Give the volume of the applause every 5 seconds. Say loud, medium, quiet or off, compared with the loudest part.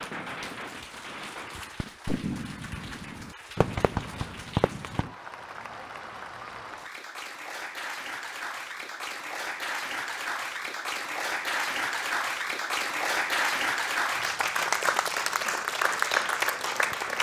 quiet, medium, loud, loud.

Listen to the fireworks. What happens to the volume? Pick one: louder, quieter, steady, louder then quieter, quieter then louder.
louder.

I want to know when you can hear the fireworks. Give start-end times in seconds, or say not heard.
0.0-5.1.